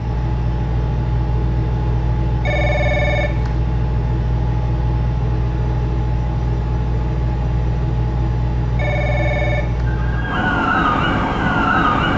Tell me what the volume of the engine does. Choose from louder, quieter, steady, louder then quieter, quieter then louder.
steady.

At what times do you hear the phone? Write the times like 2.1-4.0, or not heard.
2.4-3.6, 8.8-9.8.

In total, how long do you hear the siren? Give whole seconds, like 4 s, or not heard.
2 s.